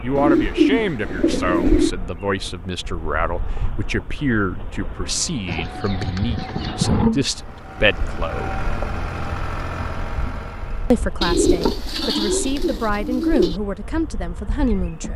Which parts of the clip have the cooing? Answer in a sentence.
You can hear the cooing from 0.1 to 1.9 s, from 5.5 to 7.0 s and from 11.2 to 13.6 s.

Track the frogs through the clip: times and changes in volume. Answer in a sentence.
You can't hear the frogs here.